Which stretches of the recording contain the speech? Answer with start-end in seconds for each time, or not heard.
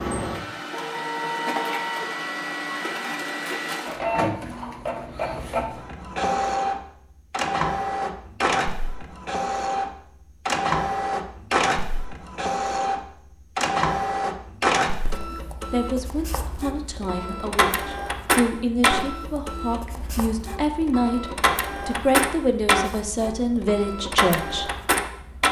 15.3-24.6.